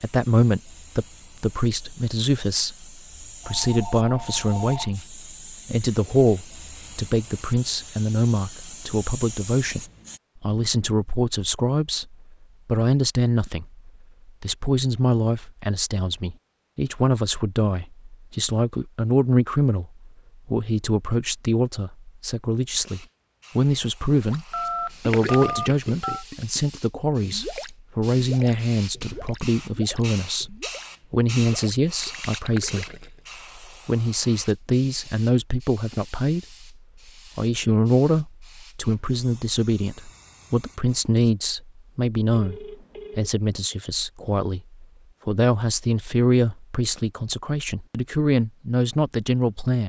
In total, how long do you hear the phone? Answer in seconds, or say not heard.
4 s.